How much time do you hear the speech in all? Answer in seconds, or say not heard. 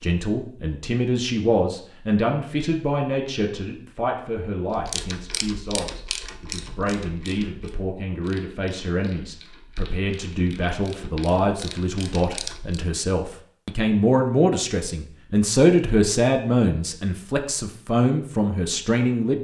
19 s.